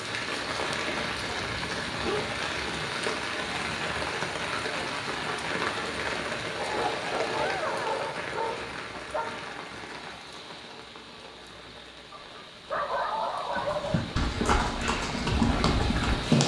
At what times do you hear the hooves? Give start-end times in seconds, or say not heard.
13.5-16.4.